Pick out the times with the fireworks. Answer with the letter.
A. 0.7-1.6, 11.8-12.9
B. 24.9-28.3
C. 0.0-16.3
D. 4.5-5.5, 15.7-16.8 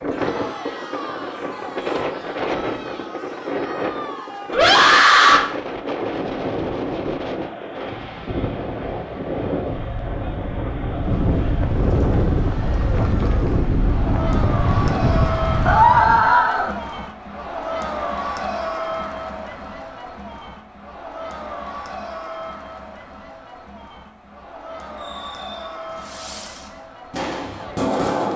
B.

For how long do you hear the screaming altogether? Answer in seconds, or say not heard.
2 s.